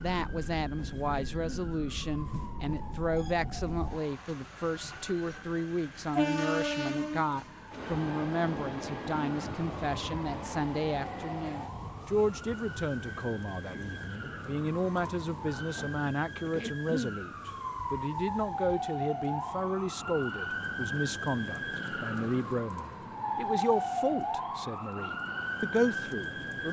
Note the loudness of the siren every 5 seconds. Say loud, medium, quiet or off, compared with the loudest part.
quiet, quiet, medium, loud, loud, loud.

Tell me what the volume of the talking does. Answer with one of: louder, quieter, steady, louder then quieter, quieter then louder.
steady.